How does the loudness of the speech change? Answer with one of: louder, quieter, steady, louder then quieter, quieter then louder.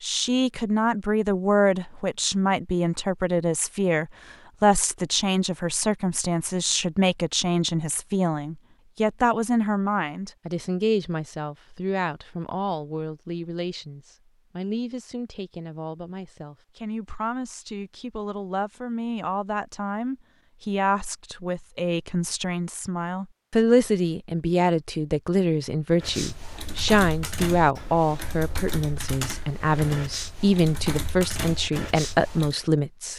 quieter then louder.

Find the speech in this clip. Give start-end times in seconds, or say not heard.
0.0-33.1.